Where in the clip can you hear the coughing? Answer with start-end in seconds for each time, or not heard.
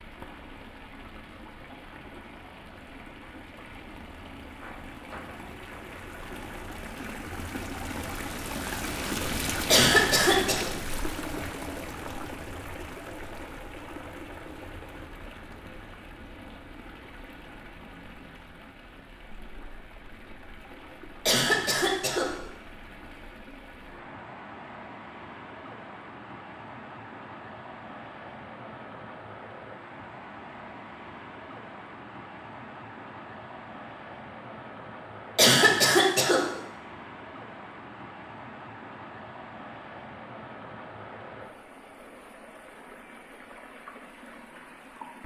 9.7-10.7, 21.2-22.3, 35.4-36.5.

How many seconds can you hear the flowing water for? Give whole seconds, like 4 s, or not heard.
45 s.